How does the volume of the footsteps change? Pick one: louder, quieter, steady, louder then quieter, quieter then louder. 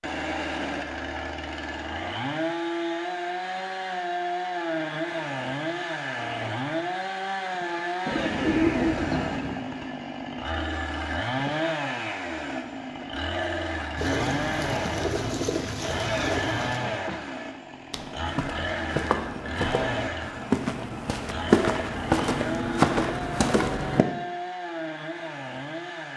louder.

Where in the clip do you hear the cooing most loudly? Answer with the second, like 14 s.
9 s.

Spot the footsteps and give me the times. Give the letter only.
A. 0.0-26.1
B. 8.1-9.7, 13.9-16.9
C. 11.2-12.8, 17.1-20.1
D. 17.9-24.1
D.